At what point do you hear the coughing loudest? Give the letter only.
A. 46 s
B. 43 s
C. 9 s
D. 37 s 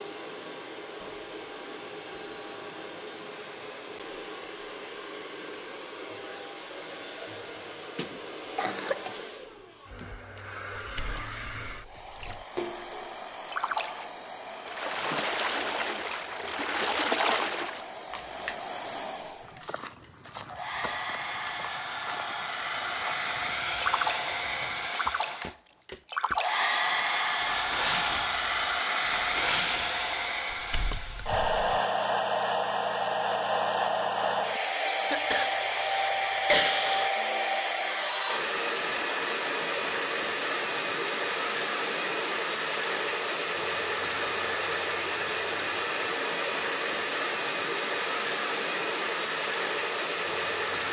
D.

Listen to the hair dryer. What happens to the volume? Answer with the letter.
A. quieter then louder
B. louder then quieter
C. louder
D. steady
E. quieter
C.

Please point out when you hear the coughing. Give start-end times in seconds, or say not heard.
8.0-9.2, 35.1-37.1.